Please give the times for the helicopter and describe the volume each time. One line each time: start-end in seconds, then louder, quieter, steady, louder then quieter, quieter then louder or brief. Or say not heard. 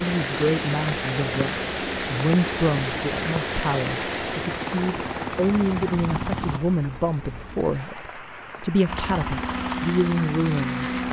0.2-6.6 louder
8.8-11.0 brief.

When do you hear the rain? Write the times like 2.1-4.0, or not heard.
0.0-11.0.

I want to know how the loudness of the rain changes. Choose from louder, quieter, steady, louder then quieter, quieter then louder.
quieter.